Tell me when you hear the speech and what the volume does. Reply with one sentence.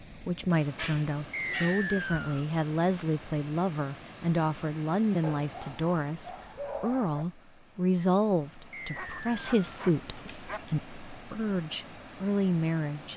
You can hear the speech from 0.2 to 13.1 s, at a steady volume.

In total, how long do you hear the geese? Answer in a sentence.
You can't hear the geese here.